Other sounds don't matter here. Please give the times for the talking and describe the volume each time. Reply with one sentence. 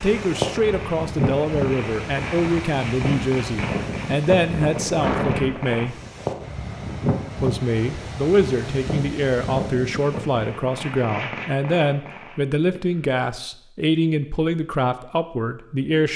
The talking can be heard from 0.0 to 6.0 s, at a steady volume; and from 7.4 to 16.1 s, at a steady volume.